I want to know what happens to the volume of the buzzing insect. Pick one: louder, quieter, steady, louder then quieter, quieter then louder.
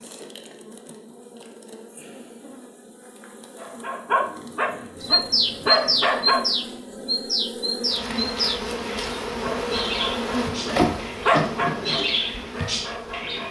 louder.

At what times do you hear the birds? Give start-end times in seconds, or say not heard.
5.0-13.4.